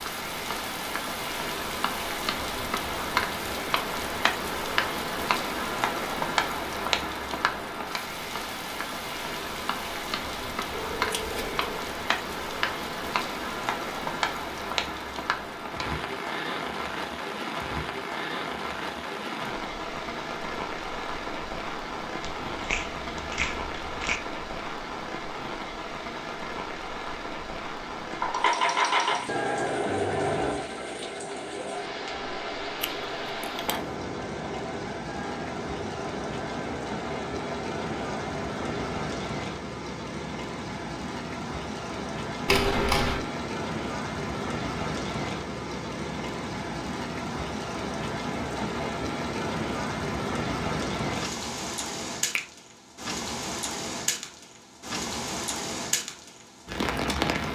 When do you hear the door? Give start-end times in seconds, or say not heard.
not heard.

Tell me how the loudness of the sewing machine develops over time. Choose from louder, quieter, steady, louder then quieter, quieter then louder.
quieter.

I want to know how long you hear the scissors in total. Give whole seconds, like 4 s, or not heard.
3 s.